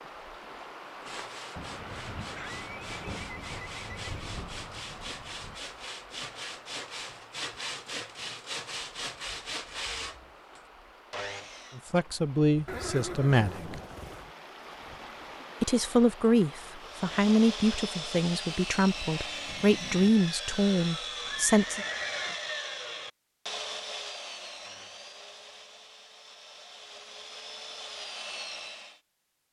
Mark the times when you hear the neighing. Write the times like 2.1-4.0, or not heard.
2.4-4.2, 12.7-14.3, 21.2-22.4.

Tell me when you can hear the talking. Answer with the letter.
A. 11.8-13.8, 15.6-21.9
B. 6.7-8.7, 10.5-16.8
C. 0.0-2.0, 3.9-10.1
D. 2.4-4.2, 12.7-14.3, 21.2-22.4
A.